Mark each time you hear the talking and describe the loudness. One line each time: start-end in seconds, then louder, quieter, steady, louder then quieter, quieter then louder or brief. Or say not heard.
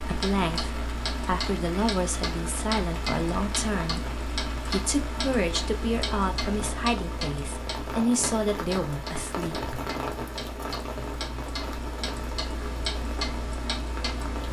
0.0-9.8 steady.